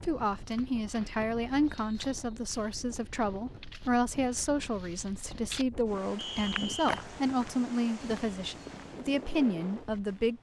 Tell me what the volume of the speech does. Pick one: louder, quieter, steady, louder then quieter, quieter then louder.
steady.